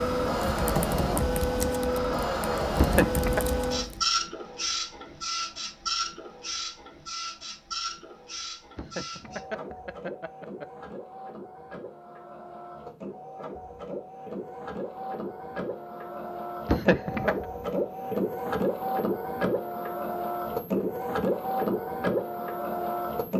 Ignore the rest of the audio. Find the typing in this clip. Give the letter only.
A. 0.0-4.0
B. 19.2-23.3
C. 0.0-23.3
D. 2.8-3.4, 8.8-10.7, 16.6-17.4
A.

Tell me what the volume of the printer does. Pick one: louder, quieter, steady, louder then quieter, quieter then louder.
quieter then louder.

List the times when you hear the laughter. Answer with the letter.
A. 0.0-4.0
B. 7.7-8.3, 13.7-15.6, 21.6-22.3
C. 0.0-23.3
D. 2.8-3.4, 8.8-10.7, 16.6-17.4
D.